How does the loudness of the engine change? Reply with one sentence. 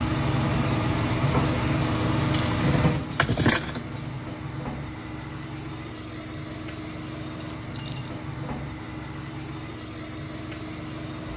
The volume of the engine goes down.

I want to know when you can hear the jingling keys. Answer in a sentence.
The jingling keys can be heard from 2.3 to 4.0 s and from 7.4 to 8.2 s.